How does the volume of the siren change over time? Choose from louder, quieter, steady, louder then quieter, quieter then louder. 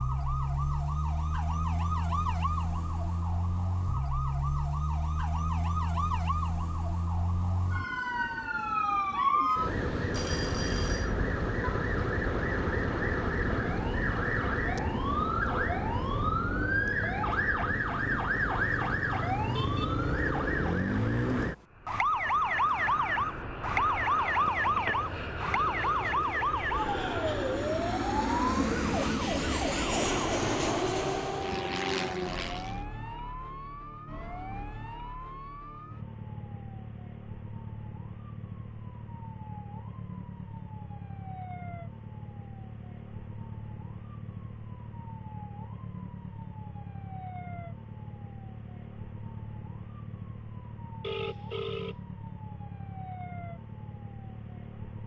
quieter.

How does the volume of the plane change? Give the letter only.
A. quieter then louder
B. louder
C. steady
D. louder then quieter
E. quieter
B.